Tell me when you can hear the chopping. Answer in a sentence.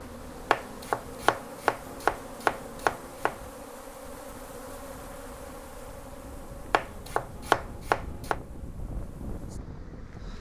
The chopping can be heard from 0.5 to 3.4 s and from 6.7 to 8.4 s.